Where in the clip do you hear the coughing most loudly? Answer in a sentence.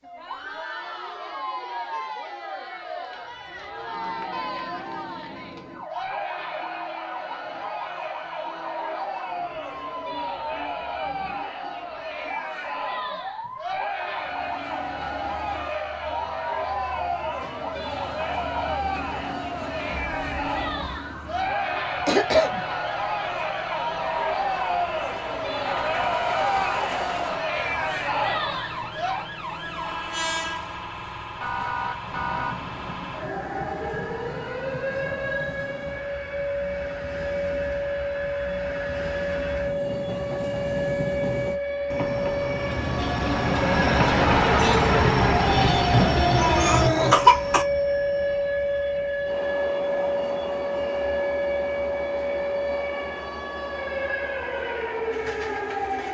The volume of the coughing peaks at 47 seconds.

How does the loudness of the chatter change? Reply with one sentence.
The volume of the chatter goes up.